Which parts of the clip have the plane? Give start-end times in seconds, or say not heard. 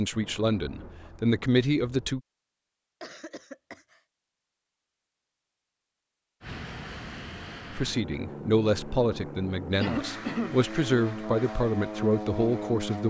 6.4-13.0.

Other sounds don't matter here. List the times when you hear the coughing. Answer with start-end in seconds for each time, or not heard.
3.0-4.0, 9.8-10.6.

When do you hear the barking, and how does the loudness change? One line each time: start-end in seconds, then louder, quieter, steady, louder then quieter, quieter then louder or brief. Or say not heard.
not heard.